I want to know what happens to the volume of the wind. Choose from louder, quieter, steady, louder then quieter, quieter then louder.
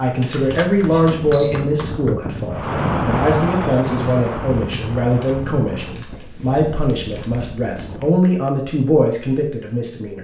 louder then quieter.